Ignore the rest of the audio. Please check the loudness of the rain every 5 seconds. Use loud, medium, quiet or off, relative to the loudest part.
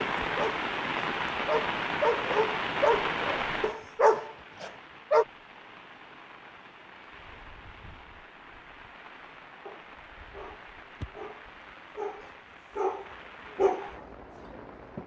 loud, quiet, quiet.